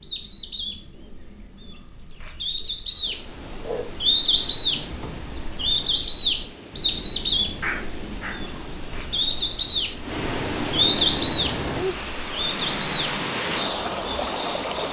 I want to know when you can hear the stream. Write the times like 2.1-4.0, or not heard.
2.9-14.8.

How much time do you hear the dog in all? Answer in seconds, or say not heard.
2 s.